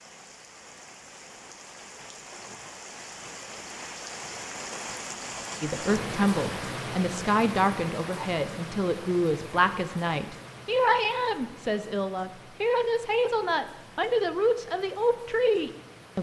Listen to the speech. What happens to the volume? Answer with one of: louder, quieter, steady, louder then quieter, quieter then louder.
steady.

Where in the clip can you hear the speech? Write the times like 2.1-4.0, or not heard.
5.6-16.1.